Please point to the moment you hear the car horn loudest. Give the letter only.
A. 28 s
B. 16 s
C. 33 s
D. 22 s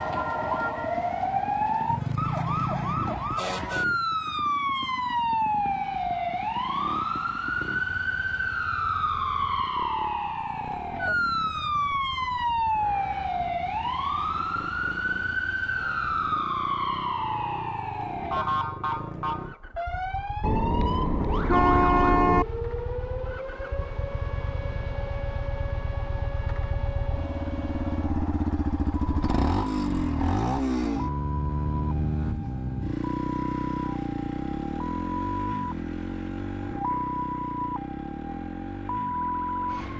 D.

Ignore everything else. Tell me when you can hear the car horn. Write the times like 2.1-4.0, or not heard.
20.4-22.4.